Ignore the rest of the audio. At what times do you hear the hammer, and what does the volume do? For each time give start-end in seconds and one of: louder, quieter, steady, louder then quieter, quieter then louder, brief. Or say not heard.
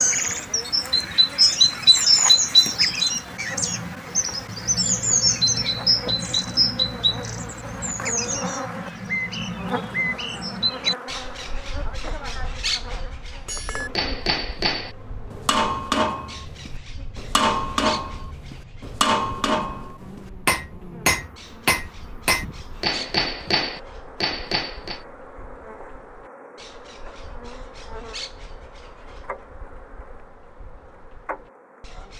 13.4-25.0 steady.